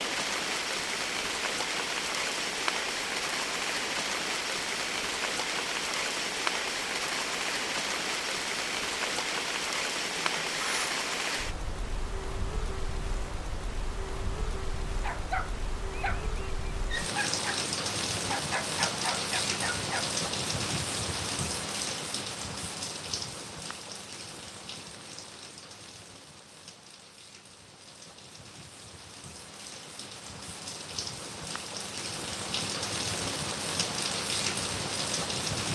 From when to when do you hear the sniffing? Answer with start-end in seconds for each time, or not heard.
10.1-10.9.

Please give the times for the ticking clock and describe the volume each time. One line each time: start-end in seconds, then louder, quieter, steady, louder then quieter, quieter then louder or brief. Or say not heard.
not heard.